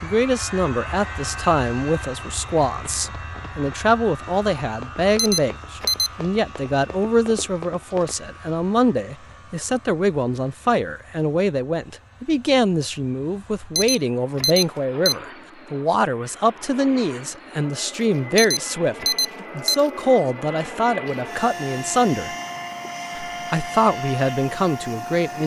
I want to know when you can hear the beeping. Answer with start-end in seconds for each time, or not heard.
5.2-6.1, 13.8-15.2, 18.4-19.8.